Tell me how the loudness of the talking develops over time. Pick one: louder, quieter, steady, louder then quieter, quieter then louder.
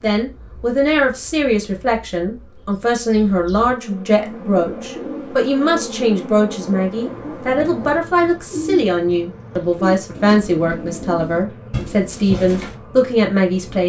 steady.